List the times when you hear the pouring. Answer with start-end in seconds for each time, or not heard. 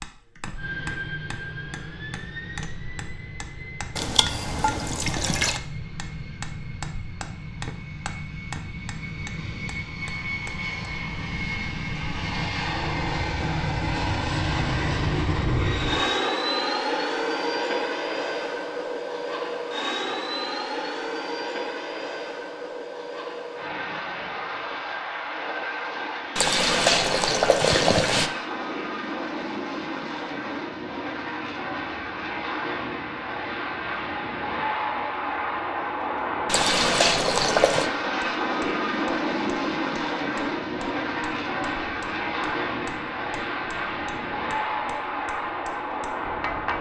4.0-5.6, 26.4-28.3, 36.5-37.9.